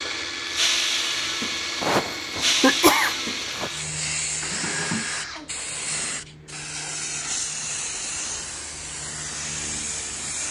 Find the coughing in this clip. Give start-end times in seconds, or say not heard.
1.8-3.7.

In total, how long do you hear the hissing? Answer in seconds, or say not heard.
10 s.